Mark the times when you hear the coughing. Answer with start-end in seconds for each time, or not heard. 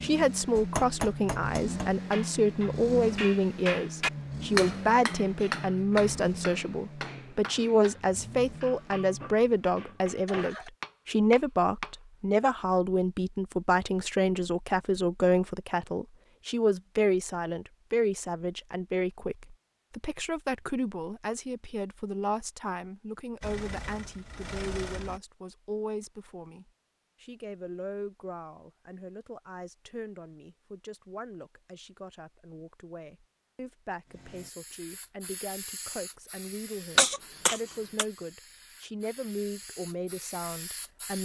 37.0-38.0.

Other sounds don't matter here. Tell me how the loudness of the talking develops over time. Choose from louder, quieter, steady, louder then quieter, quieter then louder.
quieter.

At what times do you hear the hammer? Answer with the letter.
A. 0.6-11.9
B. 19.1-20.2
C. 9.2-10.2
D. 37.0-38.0
A.